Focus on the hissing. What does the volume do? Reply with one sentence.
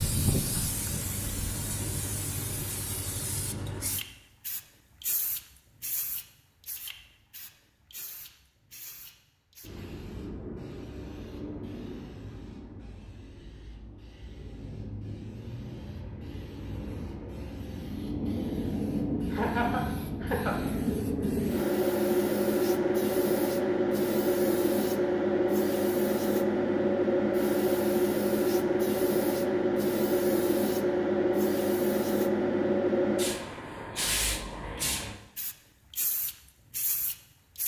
The loudness of the hissing goes down, then up.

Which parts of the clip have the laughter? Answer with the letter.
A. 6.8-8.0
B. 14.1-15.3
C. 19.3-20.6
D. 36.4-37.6
C.